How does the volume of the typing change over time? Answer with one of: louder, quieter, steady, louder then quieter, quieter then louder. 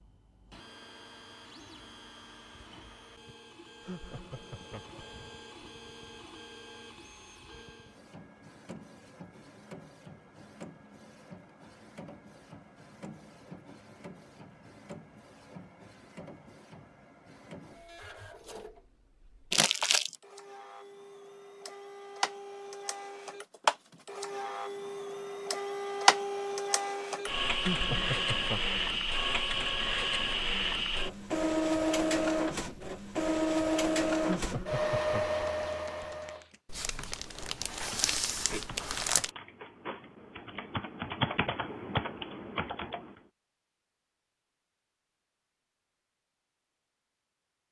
louder.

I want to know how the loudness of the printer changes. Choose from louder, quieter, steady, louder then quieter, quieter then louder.
louder.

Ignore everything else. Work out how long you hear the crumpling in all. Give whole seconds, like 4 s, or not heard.
3 s.